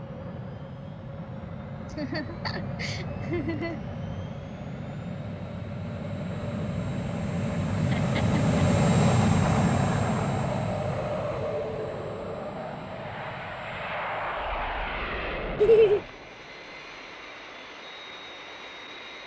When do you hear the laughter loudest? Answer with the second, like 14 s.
16 s.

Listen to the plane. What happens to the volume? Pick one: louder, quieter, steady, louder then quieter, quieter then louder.
louder then quieter.